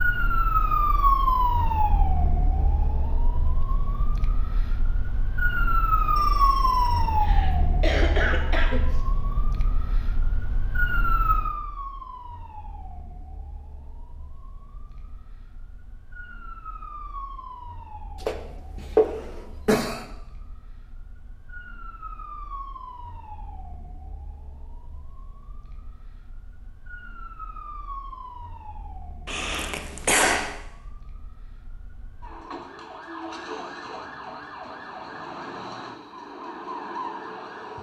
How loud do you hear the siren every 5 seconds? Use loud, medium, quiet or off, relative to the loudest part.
loud, loud, medium, quiet, quiet, quiet, quiet, medium.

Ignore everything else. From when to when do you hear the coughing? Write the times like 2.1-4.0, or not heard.
7.2-9.0, 18.2-20.1, 29.2-30.6.